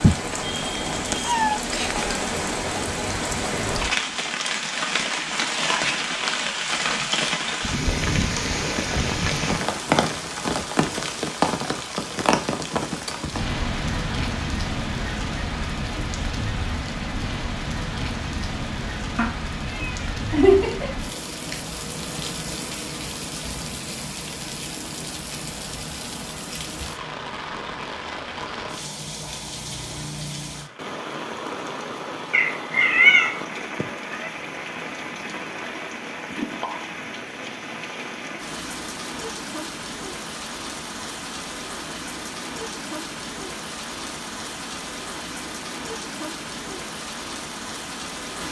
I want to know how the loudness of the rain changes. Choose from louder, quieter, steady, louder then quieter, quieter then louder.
quieter.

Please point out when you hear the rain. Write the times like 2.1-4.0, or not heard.
0.0-48.4.